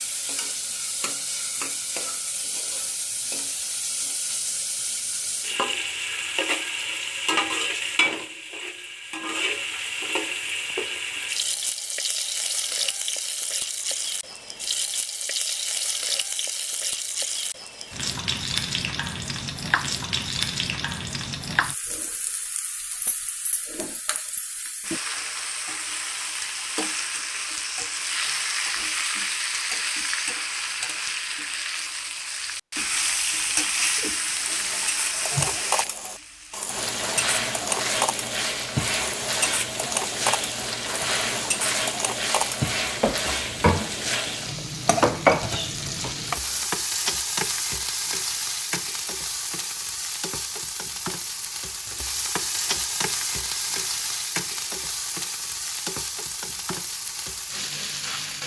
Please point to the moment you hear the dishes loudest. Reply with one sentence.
The loudest moment of the dishes is at 45 seconds.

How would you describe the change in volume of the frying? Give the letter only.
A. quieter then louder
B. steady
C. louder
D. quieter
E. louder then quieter
B.